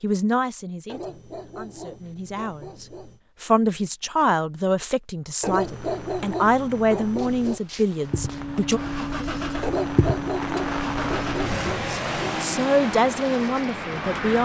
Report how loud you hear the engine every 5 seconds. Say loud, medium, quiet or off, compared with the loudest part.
off, loud, loud.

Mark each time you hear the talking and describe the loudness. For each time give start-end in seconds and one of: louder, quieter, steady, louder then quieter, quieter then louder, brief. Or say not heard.
0.0-8.8 louder
11.8-14.4 brief.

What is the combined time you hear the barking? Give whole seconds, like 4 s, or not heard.
7 s.